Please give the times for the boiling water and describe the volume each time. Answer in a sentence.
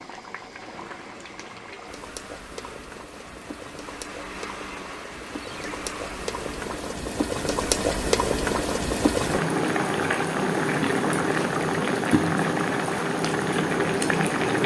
You can hear the boiling water from 0.0 to 14.6 s, getting louder.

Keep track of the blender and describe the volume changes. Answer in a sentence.
The volume of the blender goes up.